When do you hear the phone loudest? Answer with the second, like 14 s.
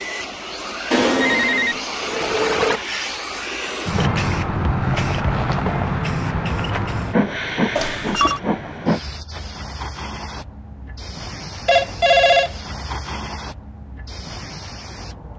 12 s.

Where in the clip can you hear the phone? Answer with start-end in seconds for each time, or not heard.
0.9-2.8, 7.8-8.4, 11.7-12.6.